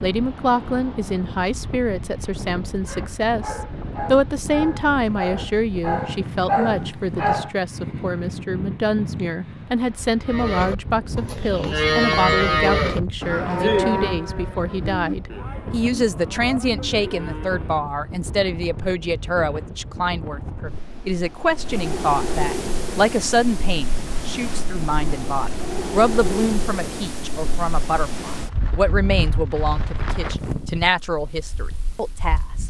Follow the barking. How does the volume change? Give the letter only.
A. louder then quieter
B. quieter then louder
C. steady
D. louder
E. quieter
D.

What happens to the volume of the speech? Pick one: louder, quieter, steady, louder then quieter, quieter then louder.
steady.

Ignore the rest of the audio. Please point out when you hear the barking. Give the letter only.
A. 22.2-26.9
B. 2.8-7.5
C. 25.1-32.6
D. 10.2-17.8
B.